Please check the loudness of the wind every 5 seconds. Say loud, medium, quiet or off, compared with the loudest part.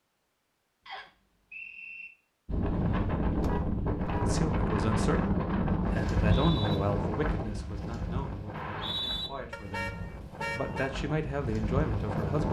loud, loud, medium.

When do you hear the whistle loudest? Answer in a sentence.
The loudest moment of the whistle is at 9 seconds.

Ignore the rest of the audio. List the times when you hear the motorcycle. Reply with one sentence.
The motorcycle can't be heard in this clip.